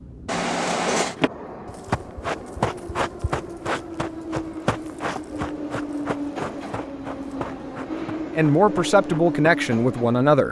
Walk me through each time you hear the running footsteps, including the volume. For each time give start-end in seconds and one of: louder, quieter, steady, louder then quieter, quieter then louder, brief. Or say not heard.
1.1-9.4 quieter.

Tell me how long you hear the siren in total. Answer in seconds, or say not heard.
not heard.